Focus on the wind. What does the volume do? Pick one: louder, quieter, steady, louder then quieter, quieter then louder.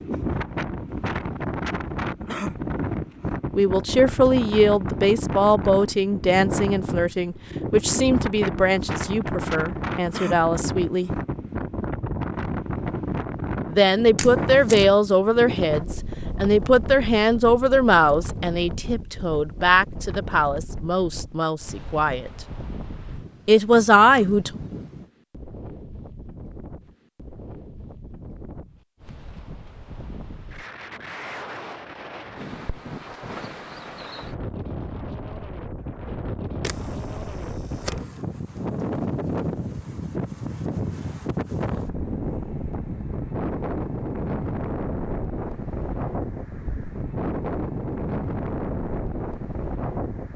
quieter then louder.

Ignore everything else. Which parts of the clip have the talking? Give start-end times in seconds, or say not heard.
3.5-11.1, 13.7-22.3, 23.4-24.5.